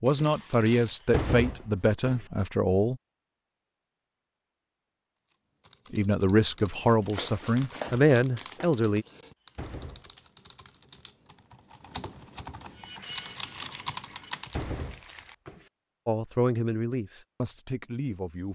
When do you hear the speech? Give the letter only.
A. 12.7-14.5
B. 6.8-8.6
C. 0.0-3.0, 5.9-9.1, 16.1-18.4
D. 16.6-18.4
C.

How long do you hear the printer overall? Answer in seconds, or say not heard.
2 s.